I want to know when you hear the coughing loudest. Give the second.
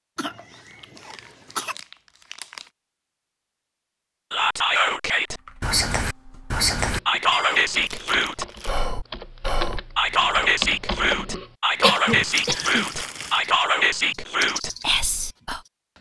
12 s.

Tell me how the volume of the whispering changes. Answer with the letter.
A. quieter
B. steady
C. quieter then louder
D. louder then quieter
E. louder
B.